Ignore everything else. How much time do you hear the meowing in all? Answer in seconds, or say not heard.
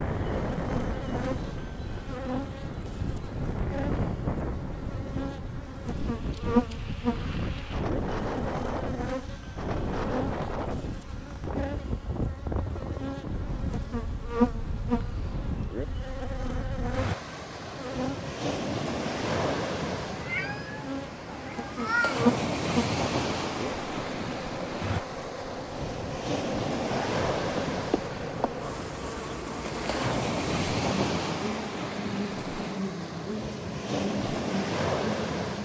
2 s.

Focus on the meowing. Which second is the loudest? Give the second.
22 s.